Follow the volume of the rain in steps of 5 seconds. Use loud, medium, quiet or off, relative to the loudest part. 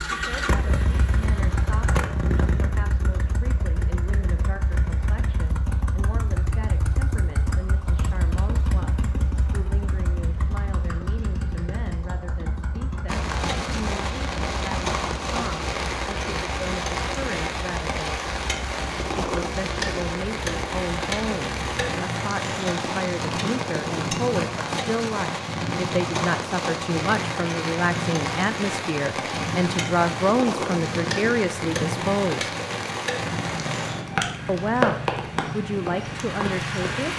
off, off, loud, loud, loud, loud, loud, loud.